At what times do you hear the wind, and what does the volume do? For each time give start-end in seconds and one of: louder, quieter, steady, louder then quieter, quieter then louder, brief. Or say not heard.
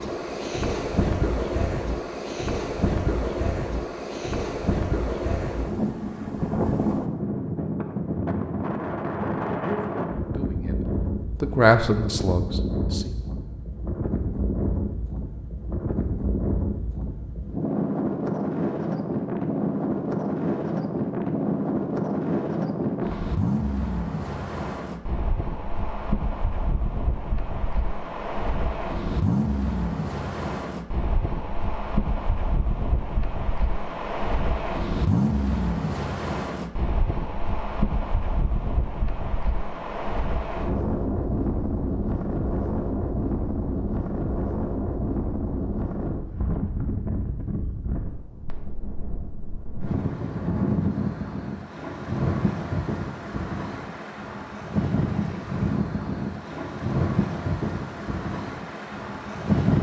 0.0-59.7 steady.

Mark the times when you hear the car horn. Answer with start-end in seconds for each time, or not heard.
not heard.